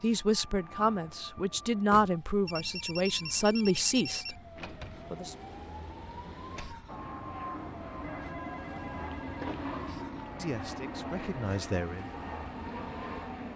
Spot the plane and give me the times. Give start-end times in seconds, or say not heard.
0.0-2.0, 6.8-13.5.